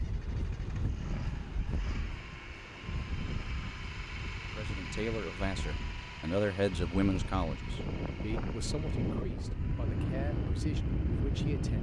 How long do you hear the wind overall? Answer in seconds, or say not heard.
12 s.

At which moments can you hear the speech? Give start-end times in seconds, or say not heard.
4.5-11.7.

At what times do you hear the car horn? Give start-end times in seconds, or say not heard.
not heard.